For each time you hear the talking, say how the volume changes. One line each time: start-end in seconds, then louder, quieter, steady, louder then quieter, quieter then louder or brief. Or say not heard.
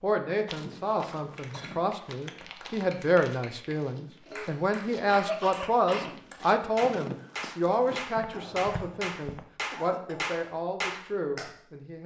0.0-12.0 louder then quieter.